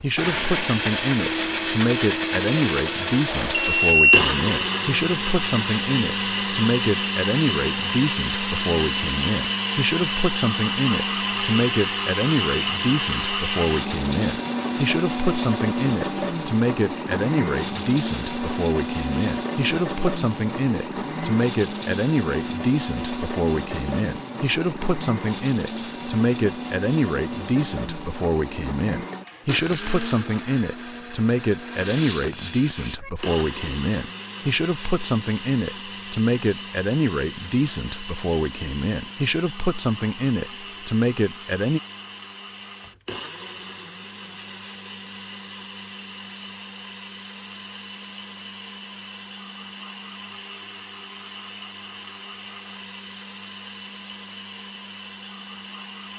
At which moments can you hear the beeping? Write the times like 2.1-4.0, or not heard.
3.3-4.2.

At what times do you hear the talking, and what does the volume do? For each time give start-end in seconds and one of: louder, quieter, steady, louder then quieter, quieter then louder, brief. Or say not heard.
0.0-41.8 steady.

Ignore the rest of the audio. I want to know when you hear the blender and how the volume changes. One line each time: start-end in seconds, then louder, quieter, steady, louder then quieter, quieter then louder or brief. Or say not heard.
0.0-56.1 quieter.